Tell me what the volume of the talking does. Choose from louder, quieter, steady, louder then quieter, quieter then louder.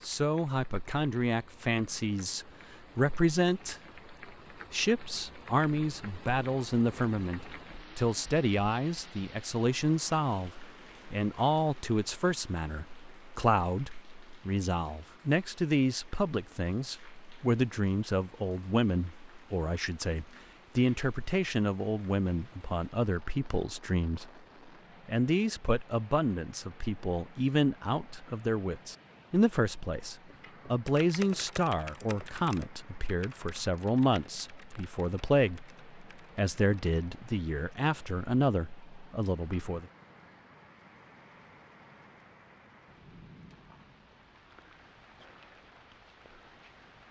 steady.